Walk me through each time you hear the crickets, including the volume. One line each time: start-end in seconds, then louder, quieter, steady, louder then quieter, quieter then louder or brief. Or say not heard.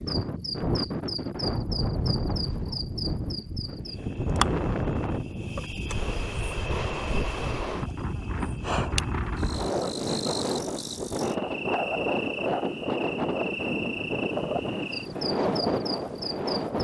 0.1-16.7 steady.